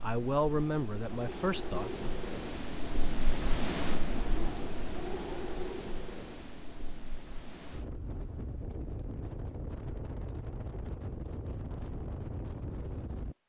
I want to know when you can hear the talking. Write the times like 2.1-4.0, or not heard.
0.0-2.1.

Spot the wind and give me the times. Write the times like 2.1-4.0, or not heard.
0.0-13.3.